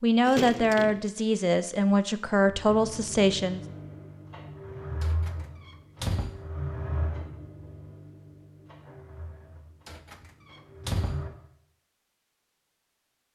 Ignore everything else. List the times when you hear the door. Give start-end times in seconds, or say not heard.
0.2-1.1, 5.0-6.5, 9.8-11.2.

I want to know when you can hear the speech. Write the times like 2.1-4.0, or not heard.
0.0-3.6.